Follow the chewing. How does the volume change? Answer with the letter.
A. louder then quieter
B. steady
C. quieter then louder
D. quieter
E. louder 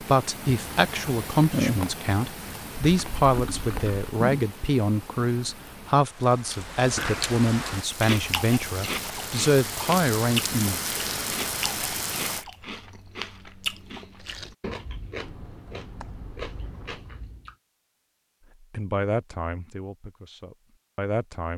D.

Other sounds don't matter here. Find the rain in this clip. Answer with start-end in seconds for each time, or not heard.
0.0-12.4.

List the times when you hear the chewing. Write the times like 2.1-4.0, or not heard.
6.5-17.6.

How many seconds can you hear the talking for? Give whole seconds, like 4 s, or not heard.
14 s.